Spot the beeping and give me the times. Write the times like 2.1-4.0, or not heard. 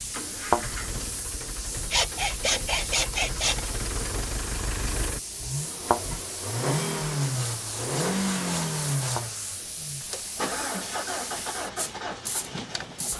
not heard.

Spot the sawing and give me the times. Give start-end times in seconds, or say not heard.
1.8-3.7, 7.2-9.2.